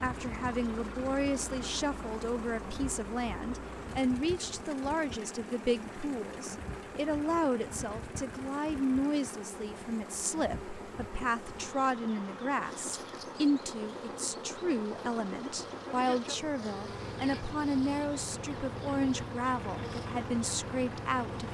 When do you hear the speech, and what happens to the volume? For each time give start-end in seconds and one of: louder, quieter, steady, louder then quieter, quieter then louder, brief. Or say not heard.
0.0-21.4 steady.